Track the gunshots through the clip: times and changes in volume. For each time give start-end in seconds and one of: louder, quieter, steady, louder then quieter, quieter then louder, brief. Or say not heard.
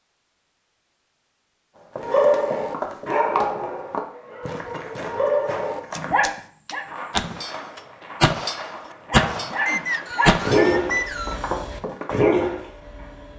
5.9-10.8 louder.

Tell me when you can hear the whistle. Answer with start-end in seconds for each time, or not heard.
9.7-11.4.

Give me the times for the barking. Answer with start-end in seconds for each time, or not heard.
2.0-6.8, 8.6-13.3.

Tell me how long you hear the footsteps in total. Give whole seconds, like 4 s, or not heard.
10 s.